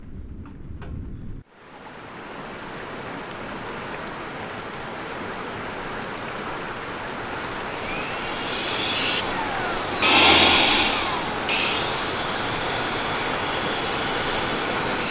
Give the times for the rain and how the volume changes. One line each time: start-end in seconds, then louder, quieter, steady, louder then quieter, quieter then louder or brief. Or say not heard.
0.0-15.0 louder.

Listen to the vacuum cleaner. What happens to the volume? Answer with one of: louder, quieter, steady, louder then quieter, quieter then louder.
louder then quieter.